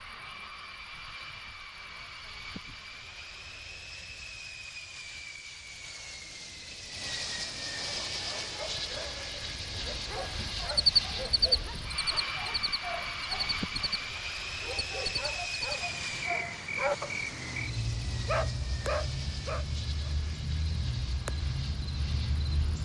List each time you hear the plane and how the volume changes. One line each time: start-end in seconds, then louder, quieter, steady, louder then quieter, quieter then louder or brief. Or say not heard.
0.0-22.7 louder then quieter.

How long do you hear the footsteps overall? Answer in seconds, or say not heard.
not heard.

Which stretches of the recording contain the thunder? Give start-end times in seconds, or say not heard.
not heard.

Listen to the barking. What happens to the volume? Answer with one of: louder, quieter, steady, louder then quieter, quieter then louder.
louder.